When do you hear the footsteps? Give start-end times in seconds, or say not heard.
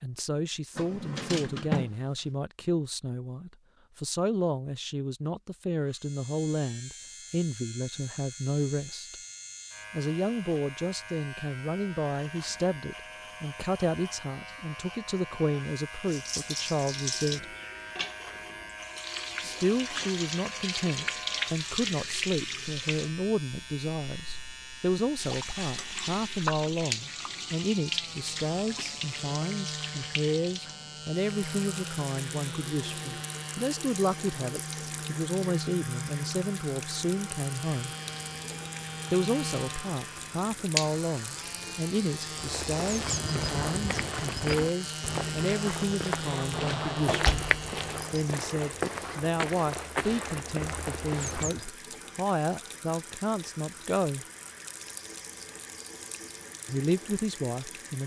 42.4-51.7.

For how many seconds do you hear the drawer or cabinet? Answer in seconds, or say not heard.
3 s.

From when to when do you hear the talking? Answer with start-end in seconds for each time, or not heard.
0.0-9.2, 9.9-17.6, 19.4-38.0, 39.1-47.5, 48.1-54.2, 56.6-58.0.